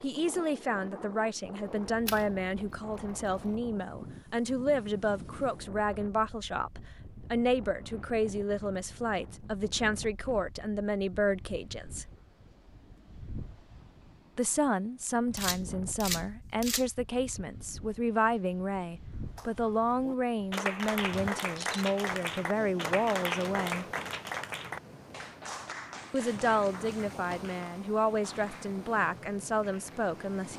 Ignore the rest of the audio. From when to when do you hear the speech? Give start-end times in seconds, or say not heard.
0.0-12.1, 14.3-23.9, 26.1-30.5.